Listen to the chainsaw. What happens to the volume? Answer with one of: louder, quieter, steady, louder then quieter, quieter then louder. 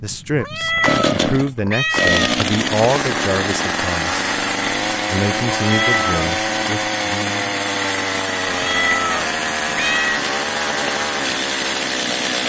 steady.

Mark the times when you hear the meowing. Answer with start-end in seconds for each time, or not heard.
0.3-2.4, 5.6-6.2, 8.5-10.2.